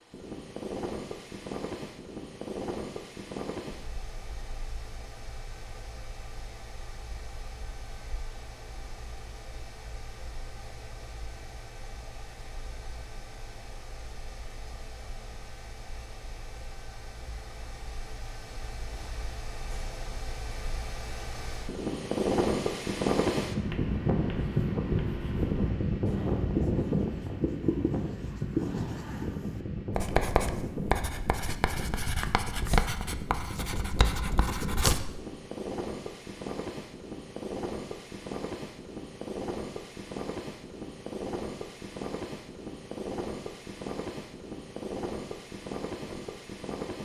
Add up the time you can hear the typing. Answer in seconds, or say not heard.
not heard.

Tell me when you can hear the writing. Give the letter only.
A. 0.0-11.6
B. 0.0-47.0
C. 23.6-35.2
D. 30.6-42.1
C.